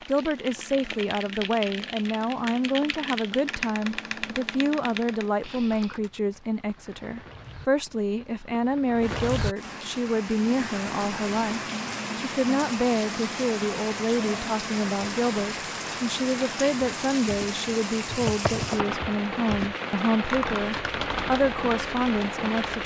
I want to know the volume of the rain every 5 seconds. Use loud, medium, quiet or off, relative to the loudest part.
quiet, medium, loud, loud, loud.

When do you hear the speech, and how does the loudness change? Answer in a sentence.
The speech can be heard from 0.1 to 22.8 s, at a steady volume.